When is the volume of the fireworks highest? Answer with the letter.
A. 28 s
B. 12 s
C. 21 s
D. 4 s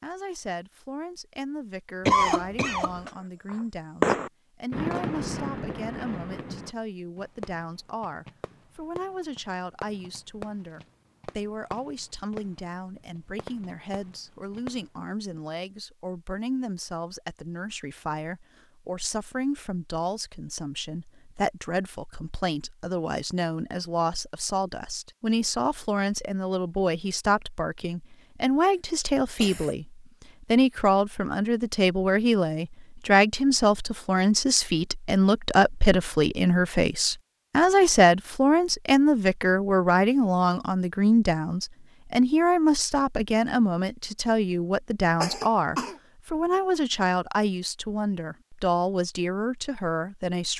D.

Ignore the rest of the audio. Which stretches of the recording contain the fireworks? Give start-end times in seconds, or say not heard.
3.5-14.9.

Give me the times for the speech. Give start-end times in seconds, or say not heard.
0.0-50.5.